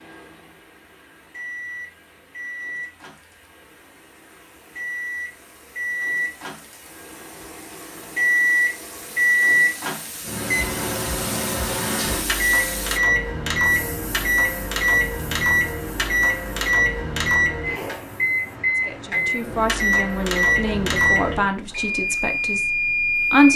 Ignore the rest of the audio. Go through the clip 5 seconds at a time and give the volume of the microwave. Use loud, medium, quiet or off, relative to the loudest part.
quiet, loud, loud, loud, loud.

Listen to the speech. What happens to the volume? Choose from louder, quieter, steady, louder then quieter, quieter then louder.
quieter.